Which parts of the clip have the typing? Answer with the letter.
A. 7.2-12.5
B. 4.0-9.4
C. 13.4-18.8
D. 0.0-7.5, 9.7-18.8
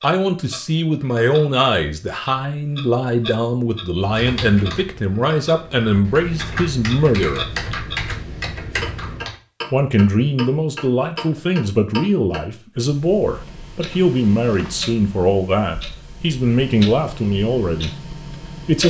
B.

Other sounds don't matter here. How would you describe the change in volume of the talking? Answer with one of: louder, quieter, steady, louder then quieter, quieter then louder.
steady.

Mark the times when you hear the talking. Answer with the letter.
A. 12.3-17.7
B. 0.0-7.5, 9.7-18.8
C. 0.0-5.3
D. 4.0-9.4
B.